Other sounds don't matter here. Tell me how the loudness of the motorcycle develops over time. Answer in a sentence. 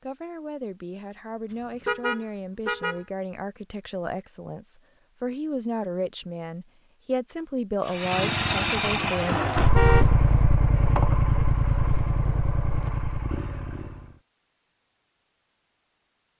The loudness of the motorcycle goes down.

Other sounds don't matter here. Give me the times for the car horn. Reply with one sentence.
You can hear the car horn from 1.9 to 3.0 s and from 9.6 to 10.9 s.